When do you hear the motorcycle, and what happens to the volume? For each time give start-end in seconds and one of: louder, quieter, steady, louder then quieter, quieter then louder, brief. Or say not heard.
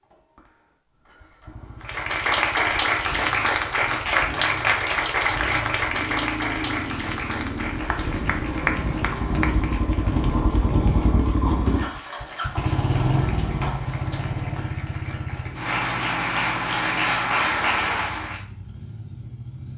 0.0-19.7 louder then quieter.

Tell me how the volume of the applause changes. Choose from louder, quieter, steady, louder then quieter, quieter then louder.
quieter then louder.